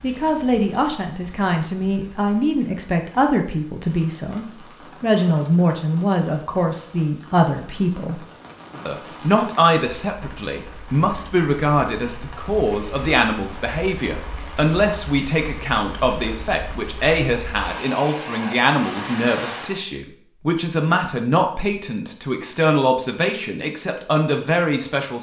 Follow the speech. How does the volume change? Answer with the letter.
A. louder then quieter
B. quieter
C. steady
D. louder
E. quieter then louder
C.